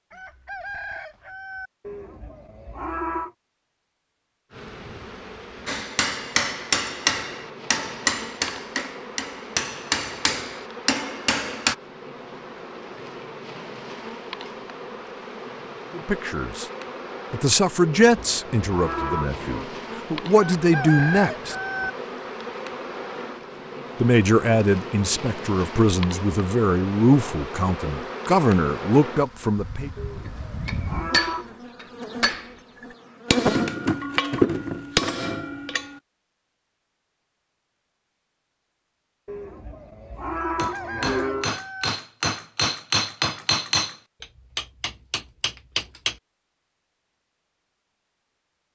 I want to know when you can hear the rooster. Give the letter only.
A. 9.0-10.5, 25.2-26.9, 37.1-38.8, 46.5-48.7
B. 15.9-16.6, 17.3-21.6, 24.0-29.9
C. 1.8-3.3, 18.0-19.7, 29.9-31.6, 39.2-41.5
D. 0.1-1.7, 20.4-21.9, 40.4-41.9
D.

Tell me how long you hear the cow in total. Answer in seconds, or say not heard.
7 s.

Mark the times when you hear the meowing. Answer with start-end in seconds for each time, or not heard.
not heard.